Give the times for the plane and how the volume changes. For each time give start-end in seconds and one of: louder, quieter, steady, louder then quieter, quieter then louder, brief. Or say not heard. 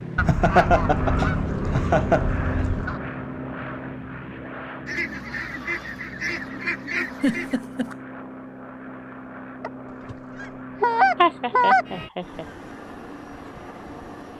0.0-14.3 quieter.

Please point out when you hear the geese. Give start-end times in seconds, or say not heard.
0.1-3.0, 4.8-7.6, 9.6-11.8.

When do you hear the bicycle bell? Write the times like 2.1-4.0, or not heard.
not heard.